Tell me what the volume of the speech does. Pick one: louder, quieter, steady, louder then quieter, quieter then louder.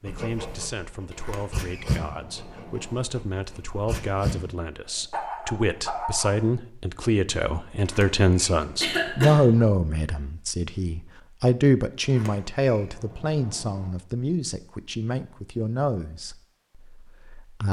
louder then quieter.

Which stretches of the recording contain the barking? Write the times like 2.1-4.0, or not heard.
0.1-4.3, 5.1-6.3.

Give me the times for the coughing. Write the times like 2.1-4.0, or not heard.
8.8-9.3.